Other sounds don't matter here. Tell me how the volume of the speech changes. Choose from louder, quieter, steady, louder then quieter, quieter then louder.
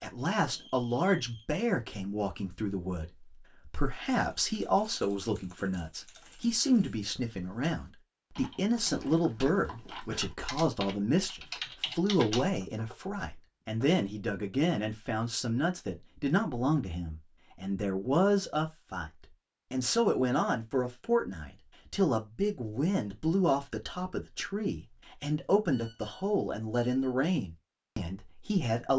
steady.